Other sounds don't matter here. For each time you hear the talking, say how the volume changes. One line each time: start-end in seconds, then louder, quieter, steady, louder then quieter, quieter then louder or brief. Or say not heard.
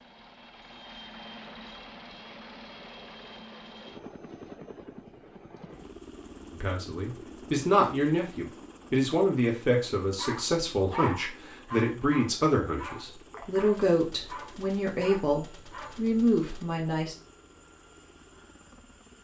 6.5-17.1 steady.